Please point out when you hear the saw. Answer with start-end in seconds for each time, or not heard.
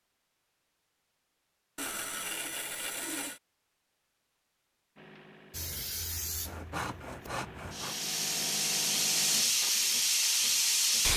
1.8-3.4, 6.5-8.0.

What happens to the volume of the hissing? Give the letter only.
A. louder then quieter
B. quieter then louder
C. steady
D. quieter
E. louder
B.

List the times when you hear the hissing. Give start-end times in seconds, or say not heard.
5.5-11.1.